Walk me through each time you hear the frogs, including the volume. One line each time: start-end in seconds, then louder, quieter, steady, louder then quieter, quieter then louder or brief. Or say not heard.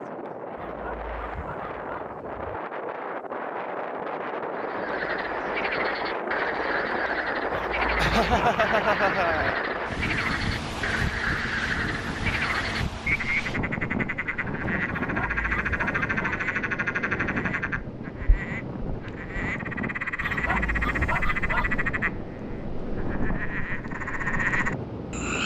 4.5-25.4 steady.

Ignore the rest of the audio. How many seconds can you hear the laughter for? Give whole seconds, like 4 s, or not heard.
2 s.